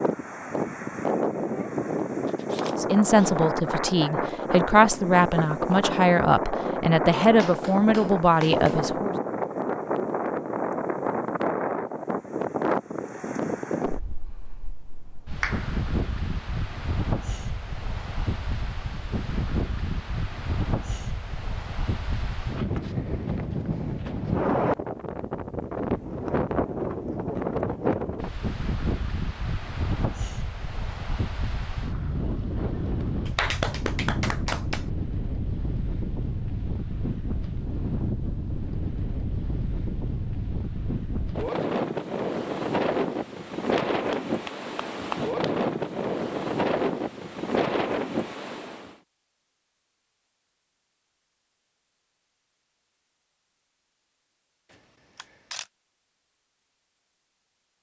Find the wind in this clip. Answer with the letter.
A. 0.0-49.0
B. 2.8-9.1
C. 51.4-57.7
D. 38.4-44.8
A.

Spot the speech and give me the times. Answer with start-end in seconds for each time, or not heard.
2.8-9.1.